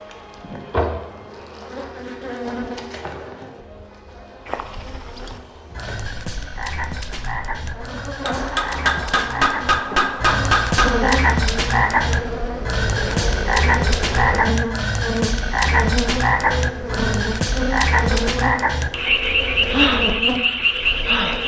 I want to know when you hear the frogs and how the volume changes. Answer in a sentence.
The frogs can be heard from 4.5 to 21.4 s, getting louder.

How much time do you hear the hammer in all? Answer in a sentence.
You can hear the hammer for 3 seconds altogether.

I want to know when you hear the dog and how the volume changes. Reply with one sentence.
You can't hear the dog here.